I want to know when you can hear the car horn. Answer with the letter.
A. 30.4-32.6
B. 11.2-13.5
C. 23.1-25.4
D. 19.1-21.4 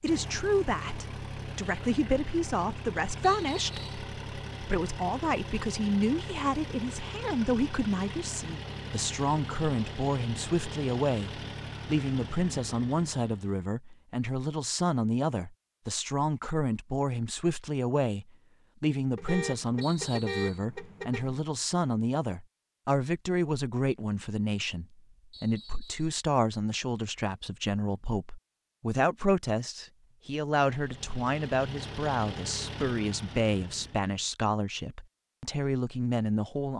D.